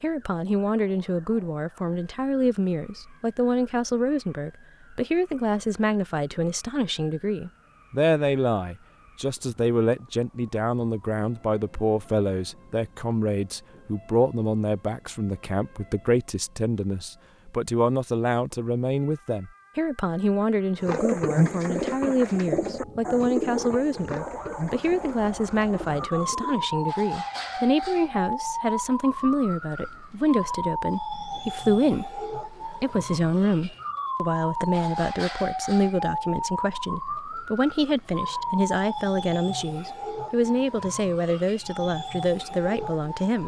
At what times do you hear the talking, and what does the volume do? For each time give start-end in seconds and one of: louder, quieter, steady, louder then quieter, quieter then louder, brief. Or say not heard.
0.0-43.4 steady.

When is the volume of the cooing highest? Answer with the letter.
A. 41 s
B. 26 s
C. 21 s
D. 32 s
C.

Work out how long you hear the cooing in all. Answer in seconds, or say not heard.
6 s.